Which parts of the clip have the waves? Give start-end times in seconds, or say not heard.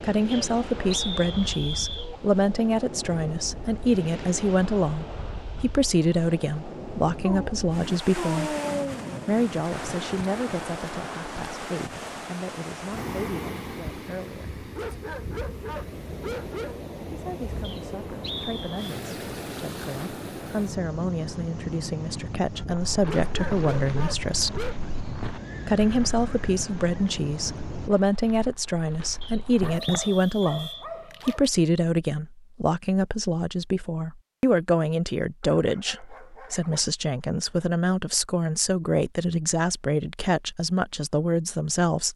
0.0-27.9.